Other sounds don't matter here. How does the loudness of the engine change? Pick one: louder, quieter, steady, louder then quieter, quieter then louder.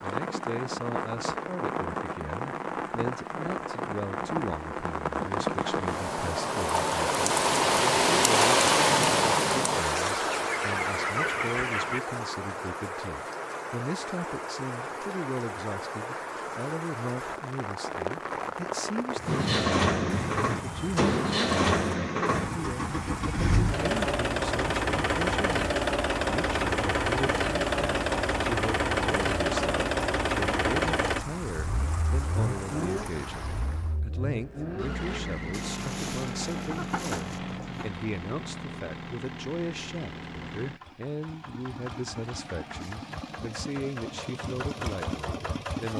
quieter.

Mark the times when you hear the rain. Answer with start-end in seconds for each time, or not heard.
0.0-34.0.